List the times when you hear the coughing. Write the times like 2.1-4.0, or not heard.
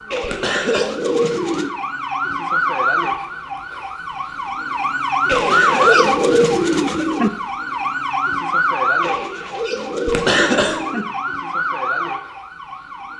0.2-0.9, 5.3-6.5, 10.1-10.8.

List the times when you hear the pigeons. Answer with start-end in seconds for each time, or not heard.
0.1-1.7, 5.2-7.3, 9.0-11.1.